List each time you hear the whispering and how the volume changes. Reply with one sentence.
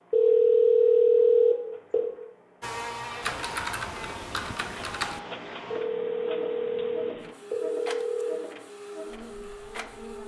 You can't hear the whispering here.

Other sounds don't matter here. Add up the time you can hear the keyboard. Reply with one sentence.
The keyboard can be heard for 2 seconds in total.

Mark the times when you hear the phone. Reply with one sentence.
The phone can be heard from 0.1 to 2.1 s and from 5.7 to 8.5 s.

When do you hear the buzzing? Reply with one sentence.
You can hear the buzzing from 2.6 to 10.2 s.